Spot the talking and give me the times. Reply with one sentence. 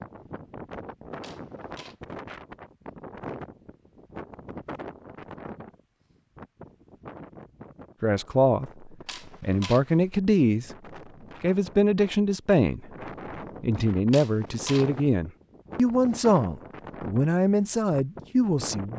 The talking can be heard from 8.0 to 10.7 s, from 11.4 to 12.8 s and from 13.6 to 18.9 s.